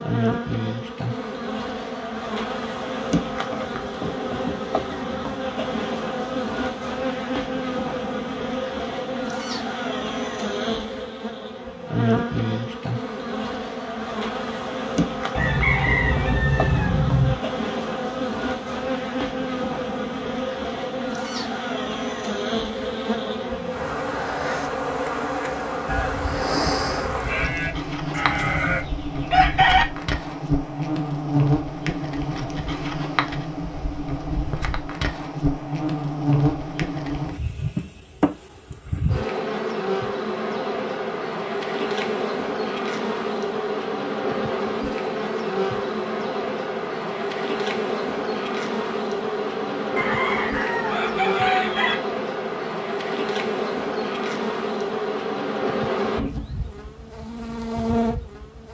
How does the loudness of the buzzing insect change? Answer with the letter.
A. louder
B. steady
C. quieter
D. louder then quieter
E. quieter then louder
B.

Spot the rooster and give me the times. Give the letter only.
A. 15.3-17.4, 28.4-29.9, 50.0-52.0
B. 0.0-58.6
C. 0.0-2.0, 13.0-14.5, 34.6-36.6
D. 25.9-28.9
A.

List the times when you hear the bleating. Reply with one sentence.
The bleating can be heard from 25.9 to 28.9 s.